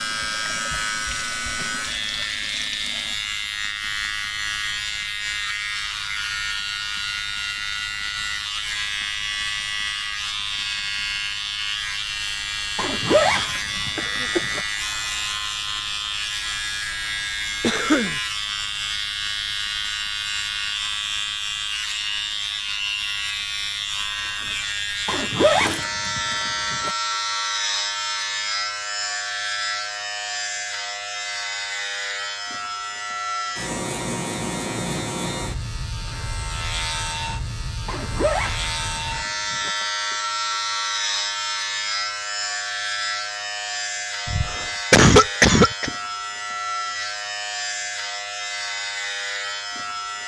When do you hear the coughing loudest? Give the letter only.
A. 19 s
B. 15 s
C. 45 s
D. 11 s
C.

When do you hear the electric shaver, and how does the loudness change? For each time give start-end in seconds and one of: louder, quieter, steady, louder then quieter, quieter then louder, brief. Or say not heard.
0.0-50.2 steady.